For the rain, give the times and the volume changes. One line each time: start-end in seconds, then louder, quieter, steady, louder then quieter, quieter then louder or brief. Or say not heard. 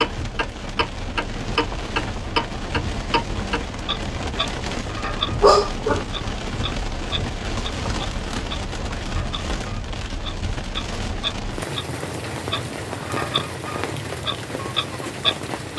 0.0-15.7 steady.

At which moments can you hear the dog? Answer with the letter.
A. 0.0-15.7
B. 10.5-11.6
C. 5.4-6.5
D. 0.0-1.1
C.